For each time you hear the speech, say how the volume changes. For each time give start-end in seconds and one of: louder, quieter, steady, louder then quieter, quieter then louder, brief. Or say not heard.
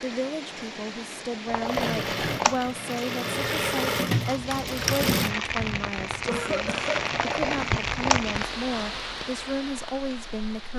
0.0-10.7 steady.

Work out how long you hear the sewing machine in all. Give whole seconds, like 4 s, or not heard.
4 s.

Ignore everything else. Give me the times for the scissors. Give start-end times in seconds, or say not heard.
1.4-2.8, 7.1-8.3.